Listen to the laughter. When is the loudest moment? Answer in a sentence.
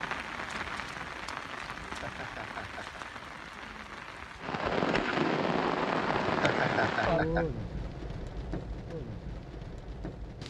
The loudest moment of the laughter is at 7 seconds.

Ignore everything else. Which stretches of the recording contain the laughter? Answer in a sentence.
You can hear the laughter from 1.8 to 3.0 s and from 6.2 to 7.5 s.